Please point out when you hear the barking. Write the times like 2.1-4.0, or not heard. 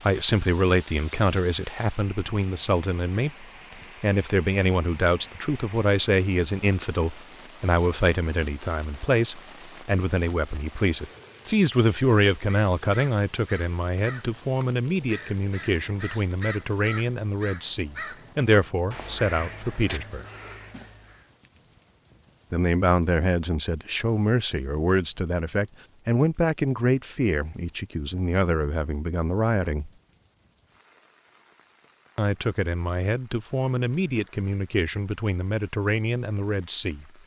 not heard.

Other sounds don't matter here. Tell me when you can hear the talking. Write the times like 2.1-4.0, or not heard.
0.0-20.2, 22.5-29.9, 32.1-37.0.